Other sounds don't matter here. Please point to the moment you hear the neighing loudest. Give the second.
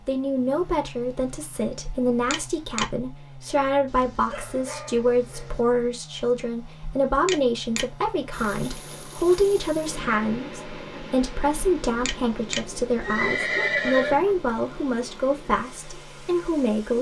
14 s.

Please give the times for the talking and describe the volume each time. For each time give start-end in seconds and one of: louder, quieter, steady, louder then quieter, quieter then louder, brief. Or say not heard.
0.1-16.9 steady.